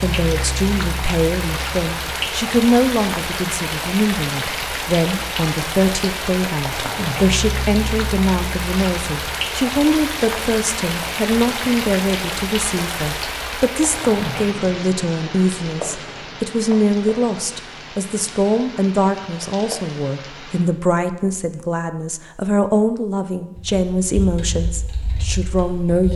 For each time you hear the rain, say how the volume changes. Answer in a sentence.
You can hear the rain from 0.0 to 20.6 s, getting quieter.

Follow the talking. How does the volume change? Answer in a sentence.
The volume of the talking stays about the same.